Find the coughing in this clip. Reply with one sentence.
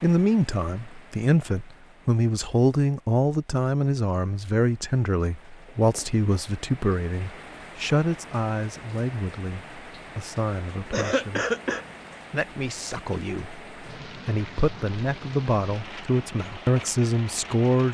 You can hear the coughing from 10.9 to 11.8 s.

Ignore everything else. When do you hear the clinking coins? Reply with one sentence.
The clinking coins can't be heard in this clip.